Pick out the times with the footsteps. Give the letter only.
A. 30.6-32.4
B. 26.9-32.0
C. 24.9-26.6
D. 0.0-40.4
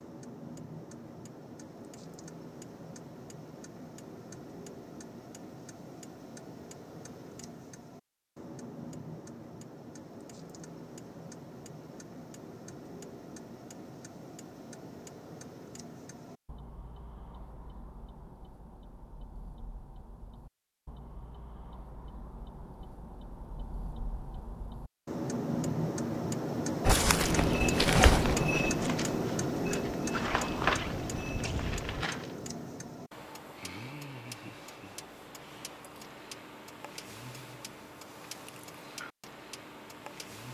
B.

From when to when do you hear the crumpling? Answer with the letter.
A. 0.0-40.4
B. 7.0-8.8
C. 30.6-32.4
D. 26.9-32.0
C.